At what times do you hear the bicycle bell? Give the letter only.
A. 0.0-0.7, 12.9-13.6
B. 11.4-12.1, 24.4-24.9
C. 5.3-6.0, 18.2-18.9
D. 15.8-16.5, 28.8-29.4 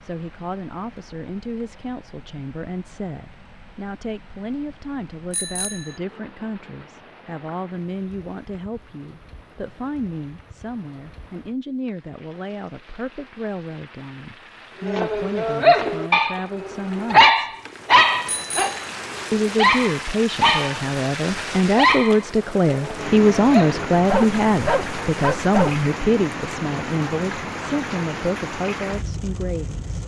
C.